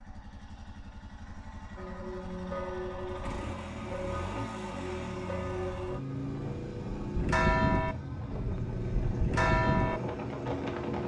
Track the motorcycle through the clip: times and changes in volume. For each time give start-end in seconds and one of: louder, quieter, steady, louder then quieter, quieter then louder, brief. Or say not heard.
0.0-11.0 louder.